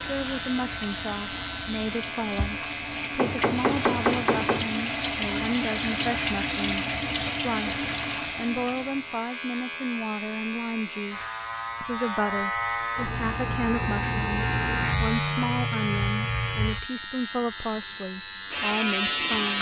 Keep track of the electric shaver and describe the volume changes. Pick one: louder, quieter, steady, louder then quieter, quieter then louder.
louder.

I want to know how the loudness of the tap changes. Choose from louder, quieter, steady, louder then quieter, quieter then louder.
louder.